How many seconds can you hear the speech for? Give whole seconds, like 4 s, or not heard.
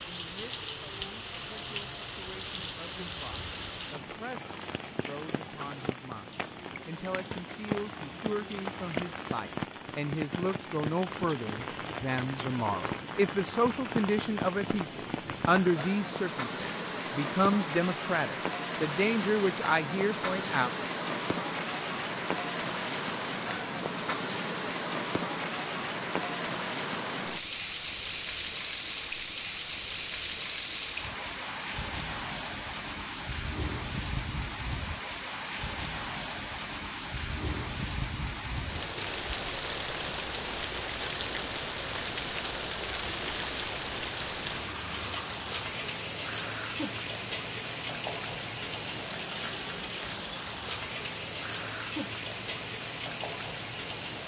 21 s.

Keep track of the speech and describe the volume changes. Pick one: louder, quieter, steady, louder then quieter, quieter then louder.
louder.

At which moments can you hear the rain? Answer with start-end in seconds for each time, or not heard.
0.0-54.2.